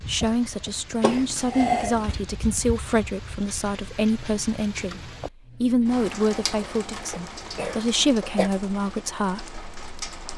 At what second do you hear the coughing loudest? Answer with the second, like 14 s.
2 s.